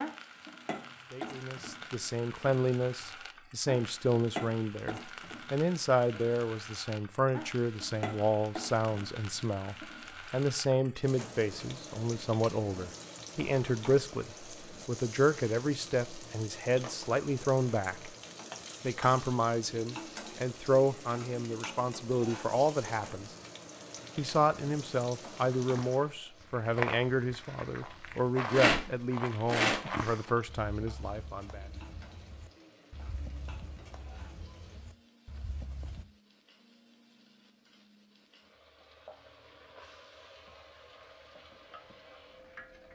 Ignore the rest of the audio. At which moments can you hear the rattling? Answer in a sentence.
You can hear the rattling from 28.4 to 30.3 s.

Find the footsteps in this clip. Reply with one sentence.
You can hear the footsteps from 25.8 to 36.0 s.